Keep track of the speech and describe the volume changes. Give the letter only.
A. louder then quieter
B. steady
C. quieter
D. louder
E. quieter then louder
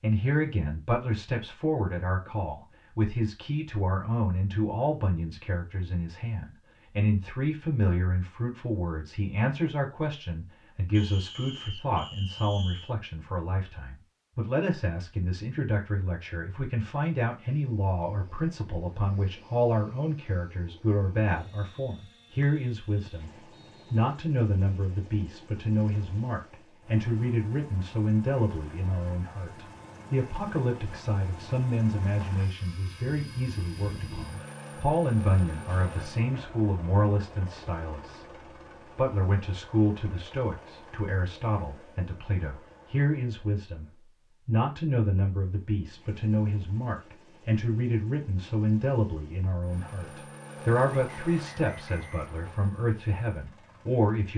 B.